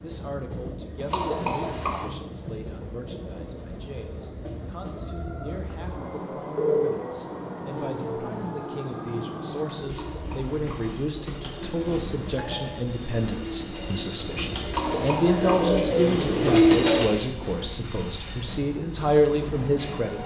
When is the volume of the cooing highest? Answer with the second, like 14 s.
17 s.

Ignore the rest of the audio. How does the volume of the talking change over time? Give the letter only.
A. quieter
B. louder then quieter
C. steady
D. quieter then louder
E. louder
E.